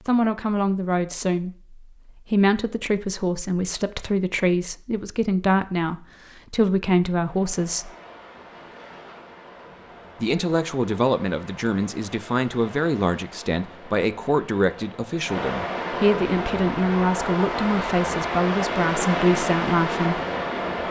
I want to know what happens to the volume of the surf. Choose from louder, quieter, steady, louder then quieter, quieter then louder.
louder.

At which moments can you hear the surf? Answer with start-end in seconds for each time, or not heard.
7.2-20.8.